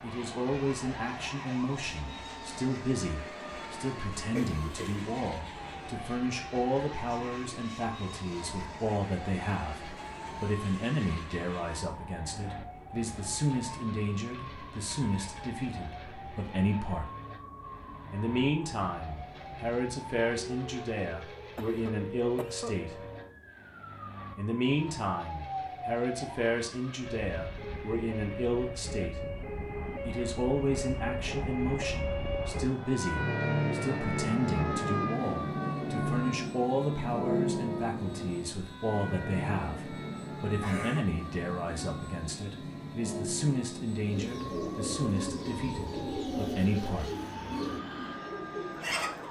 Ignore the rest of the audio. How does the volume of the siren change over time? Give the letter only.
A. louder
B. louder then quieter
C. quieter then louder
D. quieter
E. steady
B.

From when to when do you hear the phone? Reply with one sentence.
The phone can't be heard in this clip.